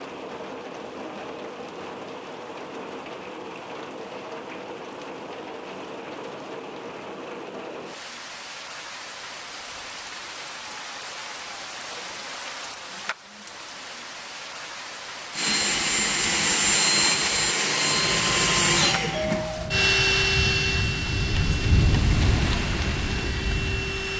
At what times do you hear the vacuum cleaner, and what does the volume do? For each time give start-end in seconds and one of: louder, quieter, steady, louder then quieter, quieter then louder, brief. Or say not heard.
15.3-24.1 quieter.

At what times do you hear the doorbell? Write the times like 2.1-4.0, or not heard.
18.0-20.1.